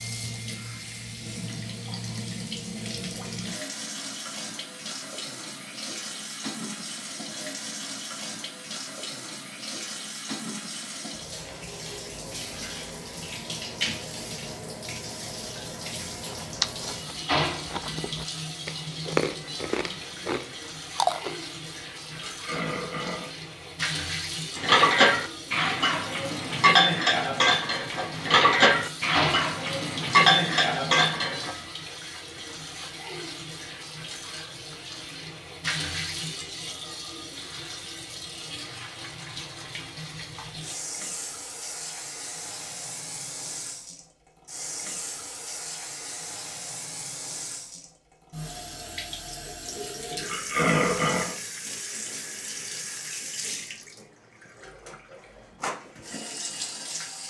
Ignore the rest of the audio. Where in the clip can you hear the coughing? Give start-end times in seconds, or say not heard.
not heard.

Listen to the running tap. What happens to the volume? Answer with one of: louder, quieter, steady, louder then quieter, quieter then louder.
steady.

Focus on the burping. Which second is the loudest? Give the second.
51 s.